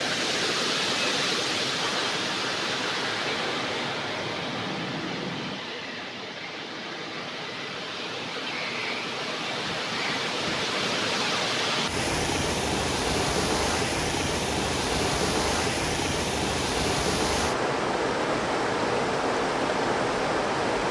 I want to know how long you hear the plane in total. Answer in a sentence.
The plane can be heard for 4 seconds in total.